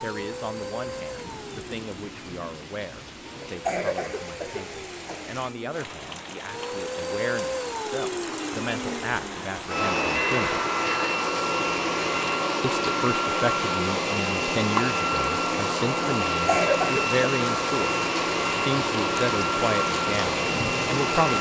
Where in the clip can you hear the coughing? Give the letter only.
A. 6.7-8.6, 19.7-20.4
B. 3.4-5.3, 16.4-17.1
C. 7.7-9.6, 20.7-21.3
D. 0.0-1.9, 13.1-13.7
B.